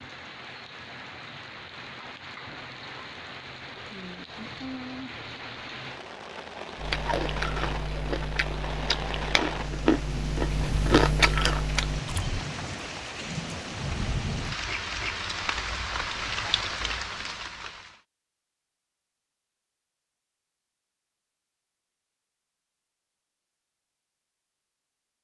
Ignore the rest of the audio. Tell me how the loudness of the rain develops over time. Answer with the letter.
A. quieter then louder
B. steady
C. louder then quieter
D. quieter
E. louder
E.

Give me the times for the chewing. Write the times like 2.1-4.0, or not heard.
6.8-12.2.